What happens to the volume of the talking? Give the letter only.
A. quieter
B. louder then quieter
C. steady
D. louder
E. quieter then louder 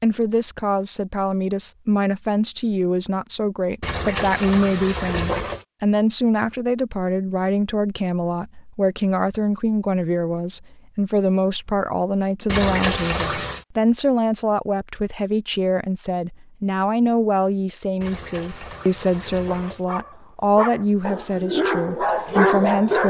C.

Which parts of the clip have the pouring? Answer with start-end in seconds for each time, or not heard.
3.8-5.7, 12.4-13.7, 18.0-19.9.